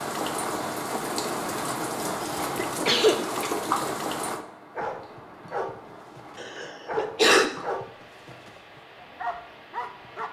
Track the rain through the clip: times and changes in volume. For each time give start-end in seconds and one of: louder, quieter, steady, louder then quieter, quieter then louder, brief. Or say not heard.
0.0-10.2 quieter.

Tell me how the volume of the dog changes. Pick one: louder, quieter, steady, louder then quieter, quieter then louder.
quieter then louder.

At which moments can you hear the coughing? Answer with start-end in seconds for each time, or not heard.
2.2-3.5, 6.3-7.5.